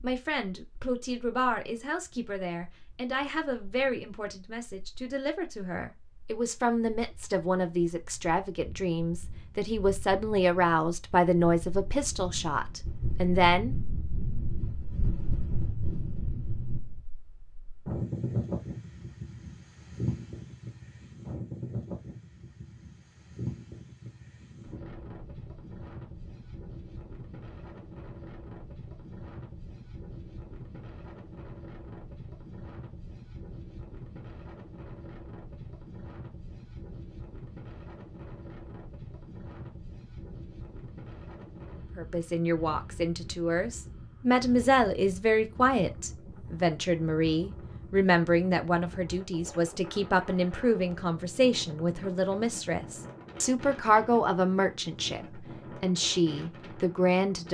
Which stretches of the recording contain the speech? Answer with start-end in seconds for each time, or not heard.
0.0-13.8, 42.0-57.4.